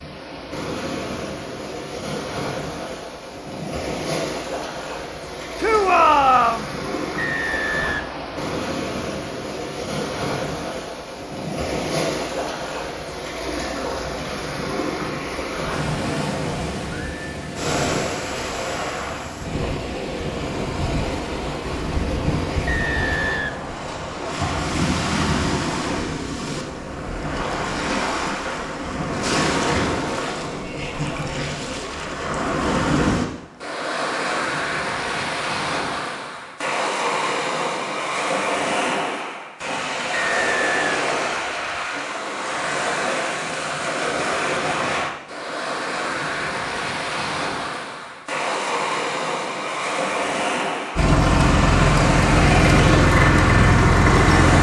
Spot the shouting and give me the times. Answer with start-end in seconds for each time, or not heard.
5.6-6.7.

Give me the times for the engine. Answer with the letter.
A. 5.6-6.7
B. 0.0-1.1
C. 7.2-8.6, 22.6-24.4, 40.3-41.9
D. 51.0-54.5
D.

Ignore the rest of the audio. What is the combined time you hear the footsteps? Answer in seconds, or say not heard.
not heard.